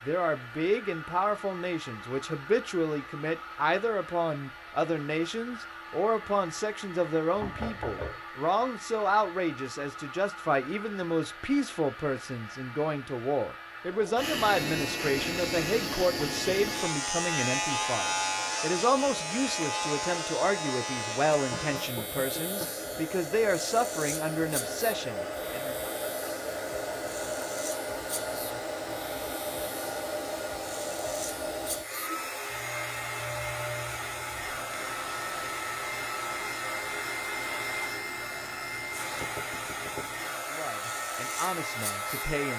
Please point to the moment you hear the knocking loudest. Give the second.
8 s.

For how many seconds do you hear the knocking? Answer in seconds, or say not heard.
3 s.